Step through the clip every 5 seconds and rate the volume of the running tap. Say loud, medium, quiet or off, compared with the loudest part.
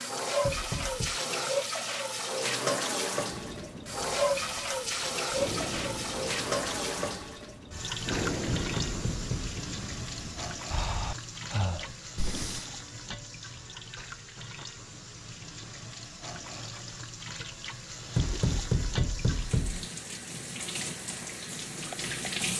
loud, loud, medium, medium, medium.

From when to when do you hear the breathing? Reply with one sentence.
You can hear the breathing from 3.2 to 12.7 s.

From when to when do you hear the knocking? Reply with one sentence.
You can hear the knocking from 0.4 to 1.2 s, from 8.6 to 9.6 s and from 18.1 to 19.9 s.